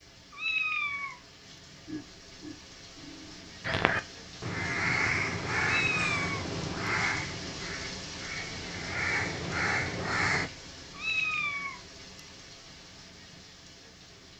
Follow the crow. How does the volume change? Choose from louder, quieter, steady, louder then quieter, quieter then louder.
quieter then louder.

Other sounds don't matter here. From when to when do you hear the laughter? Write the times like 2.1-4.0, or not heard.
1.9-3.5.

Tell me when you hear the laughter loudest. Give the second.
2 s.